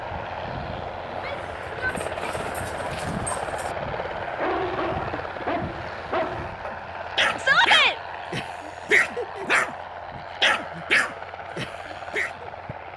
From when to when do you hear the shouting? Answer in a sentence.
The shouting can be heard from 1.1 to 2.4 s and from 7.3 to 8.0 s.